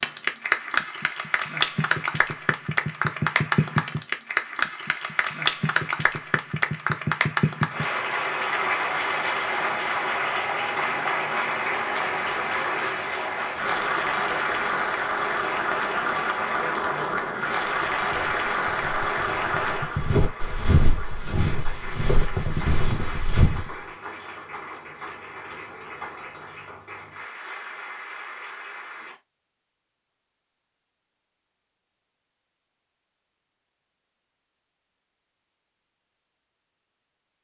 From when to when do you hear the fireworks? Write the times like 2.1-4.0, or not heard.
not heard.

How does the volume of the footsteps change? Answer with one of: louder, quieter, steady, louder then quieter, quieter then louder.
louder.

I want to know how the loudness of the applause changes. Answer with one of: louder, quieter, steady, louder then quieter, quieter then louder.
quieter.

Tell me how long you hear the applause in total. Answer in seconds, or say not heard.
29 s.